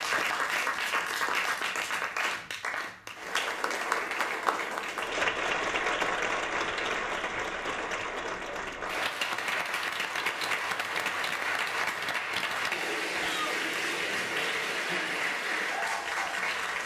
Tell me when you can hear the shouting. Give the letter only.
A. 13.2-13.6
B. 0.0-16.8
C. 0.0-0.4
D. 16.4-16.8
A.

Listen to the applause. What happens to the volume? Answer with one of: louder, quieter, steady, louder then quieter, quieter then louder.
steady.